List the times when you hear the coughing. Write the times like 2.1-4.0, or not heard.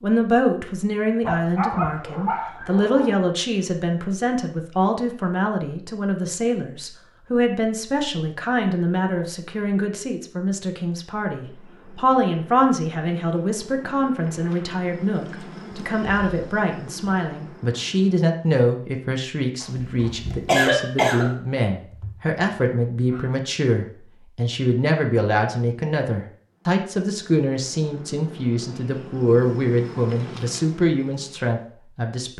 19.6-21.3.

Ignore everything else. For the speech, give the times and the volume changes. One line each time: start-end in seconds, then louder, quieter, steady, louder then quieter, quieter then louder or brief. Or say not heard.
0.0-32.3 steady.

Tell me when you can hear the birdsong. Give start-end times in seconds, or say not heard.
not heard.